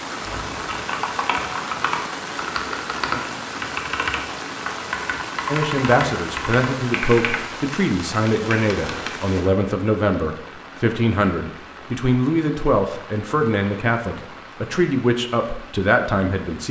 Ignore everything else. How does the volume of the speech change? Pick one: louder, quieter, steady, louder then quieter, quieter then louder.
steady.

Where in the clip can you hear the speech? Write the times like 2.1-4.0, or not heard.
5.5-16.6.